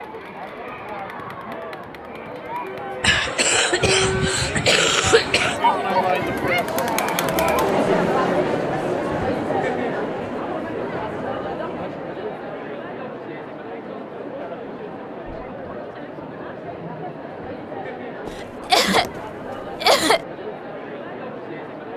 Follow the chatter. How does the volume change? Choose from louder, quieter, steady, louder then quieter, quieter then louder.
louder then quieter.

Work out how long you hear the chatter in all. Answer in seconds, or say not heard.
22 s.